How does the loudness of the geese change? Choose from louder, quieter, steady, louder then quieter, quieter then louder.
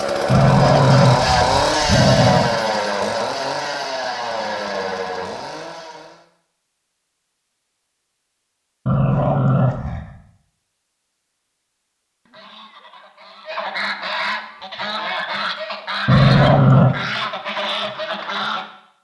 louder.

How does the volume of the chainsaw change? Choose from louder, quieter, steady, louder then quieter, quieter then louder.
quieter.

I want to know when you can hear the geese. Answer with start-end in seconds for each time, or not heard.
12.2-18.6.